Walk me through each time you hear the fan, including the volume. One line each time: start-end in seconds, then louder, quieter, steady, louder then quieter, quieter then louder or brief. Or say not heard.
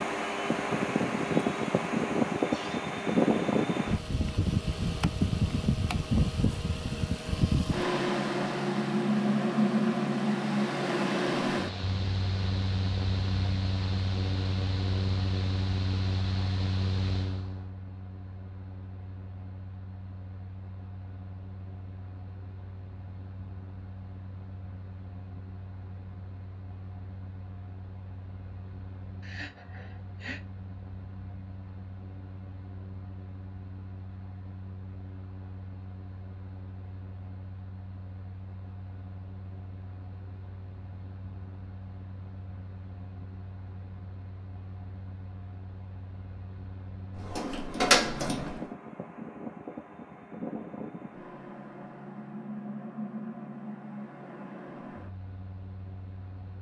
0.0-56.5 quieter then louder.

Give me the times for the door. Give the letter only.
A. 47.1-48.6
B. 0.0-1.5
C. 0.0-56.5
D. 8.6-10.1
A.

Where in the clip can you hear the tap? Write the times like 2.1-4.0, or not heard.
not heard.